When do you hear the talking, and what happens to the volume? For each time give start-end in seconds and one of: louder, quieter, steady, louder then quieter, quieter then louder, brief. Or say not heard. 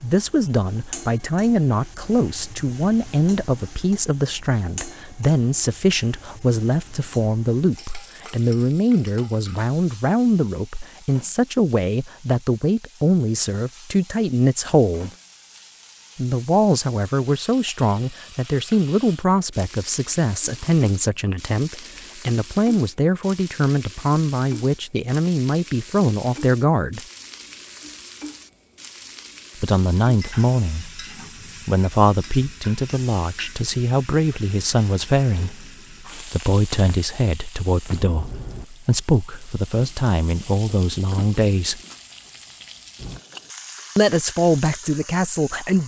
0.0-15.1 steady
16.1-27.0 steady
29.6-31.1 brief
31.6-41.8 steady
44.0-45.8 brief.